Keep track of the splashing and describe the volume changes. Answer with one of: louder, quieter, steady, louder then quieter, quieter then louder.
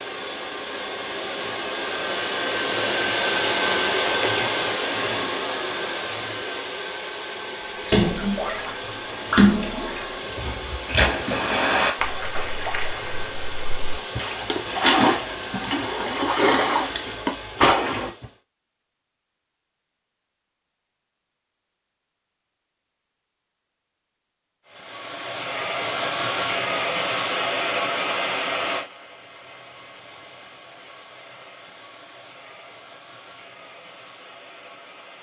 quieter then louder.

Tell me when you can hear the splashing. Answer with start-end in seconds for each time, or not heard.
7.8-18.2.